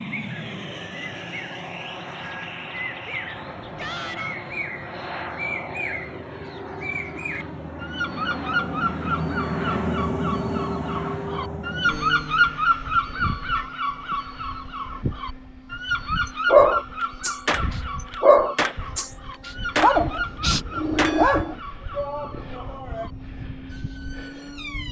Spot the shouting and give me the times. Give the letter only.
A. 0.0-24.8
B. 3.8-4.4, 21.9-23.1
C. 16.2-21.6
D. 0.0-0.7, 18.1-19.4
B.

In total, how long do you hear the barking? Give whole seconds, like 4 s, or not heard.
5 s.